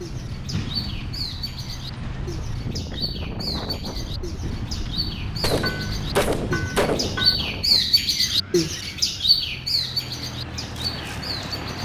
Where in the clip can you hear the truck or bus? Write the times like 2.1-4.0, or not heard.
0.0-2.8, 4.4-11.8.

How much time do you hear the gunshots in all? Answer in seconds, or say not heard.
2 s.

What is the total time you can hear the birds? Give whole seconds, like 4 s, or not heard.
12 s.